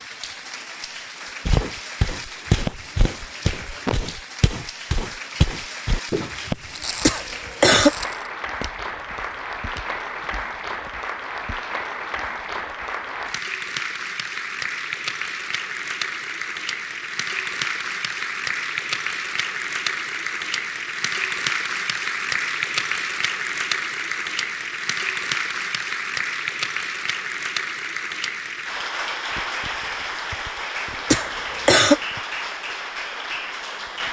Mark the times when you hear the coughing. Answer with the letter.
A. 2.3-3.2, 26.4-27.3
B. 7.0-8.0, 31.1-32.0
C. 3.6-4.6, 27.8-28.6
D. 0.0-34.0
B.